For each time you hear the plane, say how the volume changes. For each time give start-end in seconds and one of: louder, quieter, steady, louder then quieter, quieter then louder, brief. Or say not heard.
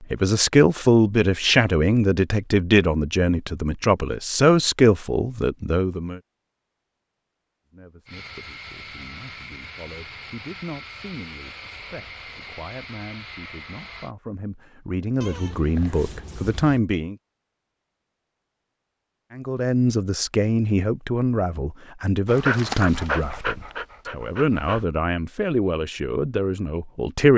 8.1-14.2 steady.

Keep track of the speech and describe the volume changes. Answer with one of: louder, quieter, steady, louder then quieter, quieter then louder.
quieter then louder.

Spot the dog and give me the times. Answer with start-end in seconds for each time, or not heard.
22.2-24.9.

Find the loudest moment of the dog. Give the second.
23 s.